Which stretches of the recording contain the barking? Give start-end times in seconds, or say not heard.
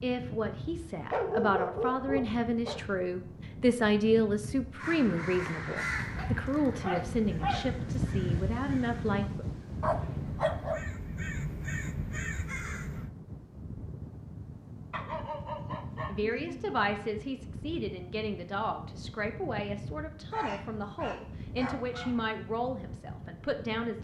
1.0-2.8, 6.0-7.7, 9.8-10.8, 14.9-16.7, 20.3-22.2.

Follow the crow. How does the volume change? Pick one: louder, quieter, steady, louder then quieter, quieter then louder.
quieter then louder.